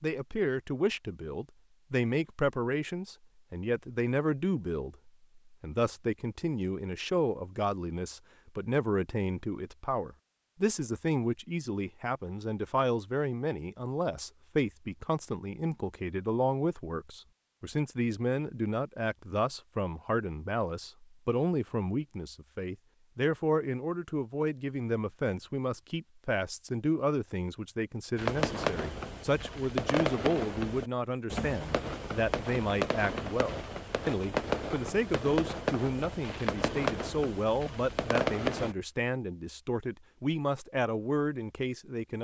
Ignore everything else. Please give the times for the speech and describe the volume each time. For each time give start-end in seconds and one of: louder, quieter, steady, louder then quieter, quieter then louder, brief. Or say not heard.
0.0-42.1 steady.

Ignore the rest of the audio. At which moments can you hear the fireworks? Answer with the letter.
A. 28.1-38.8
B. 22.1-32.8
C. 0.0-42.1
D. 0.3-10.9
A.